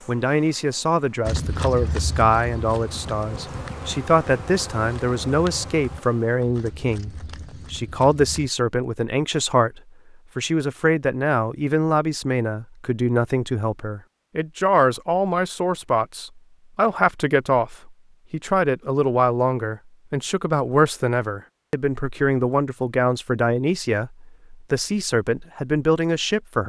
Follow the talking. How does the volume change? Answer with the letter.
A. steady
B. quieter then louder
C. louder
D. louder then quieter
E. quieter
A.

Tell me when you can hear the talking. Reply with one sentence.
The talking can be heard from 0.1 to 26.6 s.